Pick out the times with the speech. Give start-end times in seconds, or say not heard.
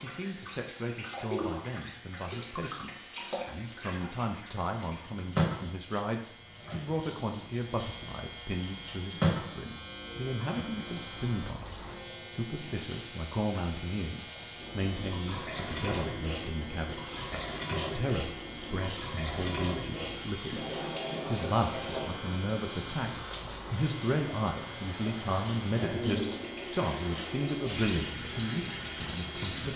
0.0-20.6, 21.2-29.7.